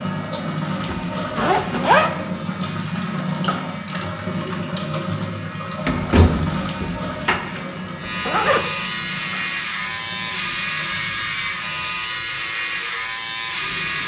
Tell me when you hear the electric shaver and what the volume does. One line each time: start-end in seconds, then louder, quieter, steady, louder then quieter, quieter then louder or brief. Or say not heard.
0.0-14.0 louder.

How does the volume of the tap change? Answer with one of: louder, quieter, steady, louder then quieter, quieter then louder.
quieter.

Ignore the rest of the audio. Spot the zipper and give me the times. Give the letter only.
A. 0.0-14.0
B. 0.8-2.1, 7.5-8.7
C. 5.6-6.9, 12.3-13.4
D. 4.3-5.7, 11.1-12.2
B.